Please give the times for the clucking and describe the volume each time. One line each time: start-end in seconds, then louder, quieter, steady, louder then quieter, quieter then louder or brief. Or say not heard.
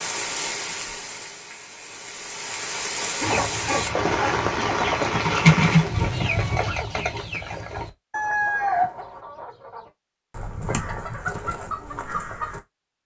3.2-12.6 louder then quieter.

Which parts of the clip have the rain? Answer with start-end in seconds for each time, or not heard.
0.0-6.7.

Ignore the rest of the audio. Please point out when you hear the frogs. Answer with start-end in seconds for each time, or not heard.
not heard.